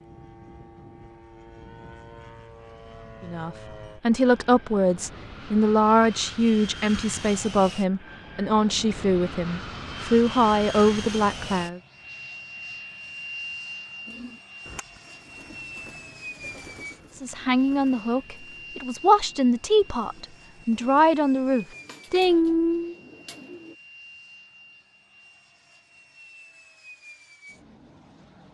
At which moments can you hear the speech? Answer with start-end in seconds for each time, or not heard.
3.2-11.8, 17.1-22.9.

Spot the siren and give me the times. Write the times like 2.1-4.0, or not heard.
not heard.